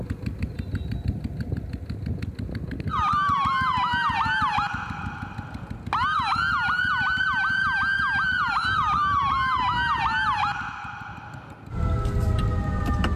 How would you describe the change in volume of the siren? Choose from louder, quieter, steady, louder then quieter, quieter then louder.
quieter.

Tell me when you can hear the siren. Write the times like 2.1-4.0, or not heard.
2.9-13.1.